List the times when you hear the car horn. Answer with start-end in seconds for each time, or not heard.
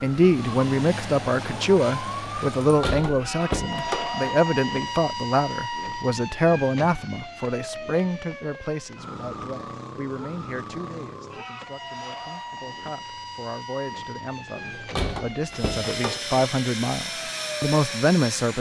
not heard.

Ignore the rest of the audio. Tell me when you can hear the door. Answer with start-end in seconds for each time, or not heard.
2.6-4.2, 14.6-16.4.